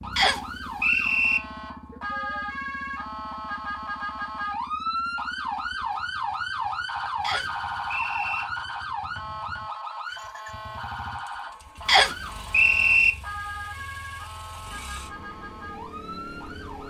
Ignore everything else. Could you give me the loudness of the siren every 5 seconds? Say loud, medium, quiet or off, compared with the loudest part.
loud, loud, medium, medium.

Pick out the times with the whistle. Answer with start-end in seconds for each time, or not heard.
0.1-1.4, 7.2-8.4, 11.8-13.1.